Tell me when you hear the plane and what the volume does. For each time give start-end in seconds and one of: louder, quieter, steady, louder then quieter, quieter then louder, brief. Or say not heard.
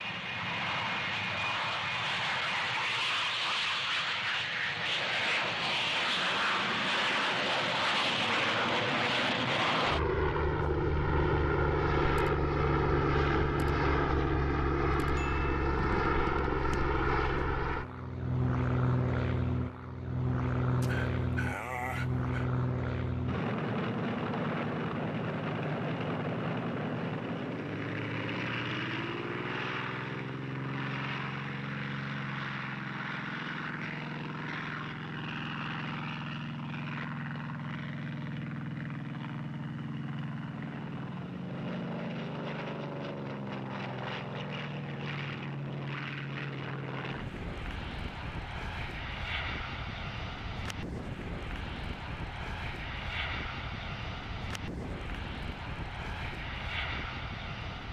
0.0-57.8 quieter.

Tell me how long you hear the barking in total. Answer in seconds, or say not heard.
2 s.